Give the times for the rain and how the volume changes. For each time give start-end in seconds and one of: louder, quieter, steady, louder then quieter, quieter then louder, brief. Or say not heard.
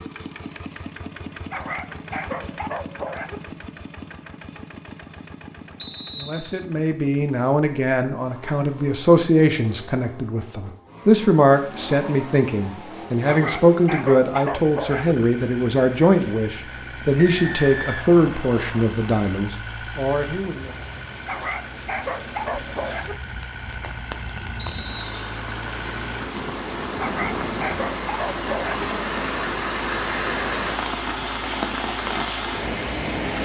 11.4-33.4 louder.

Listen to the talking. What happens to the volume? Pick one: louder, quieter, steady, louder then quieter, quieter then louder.
steady.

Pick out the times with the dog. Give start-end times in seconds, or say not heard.
1.5-3.4, 13.2-15.2, 21.2-23.1, 26.9-28.9.